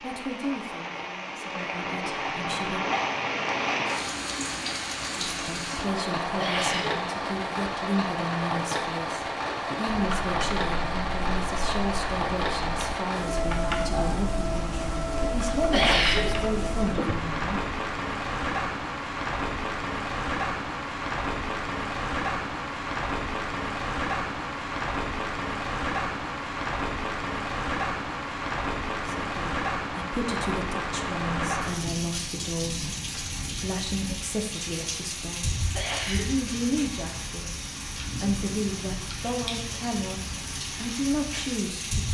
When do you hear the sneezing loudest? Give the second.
16 s.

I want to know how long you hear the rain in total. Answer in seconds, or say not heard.
42 s.